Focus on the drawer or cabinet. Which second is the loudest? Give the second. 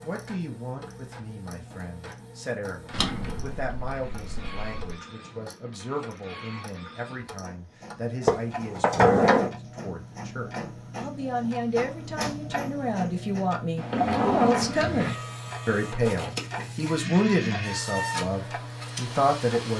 9 s.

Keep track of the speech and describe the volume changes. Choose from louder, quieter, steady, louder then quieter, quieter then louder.
louder.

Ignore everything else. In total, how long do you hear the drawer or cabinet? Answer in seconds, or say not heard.
4 s.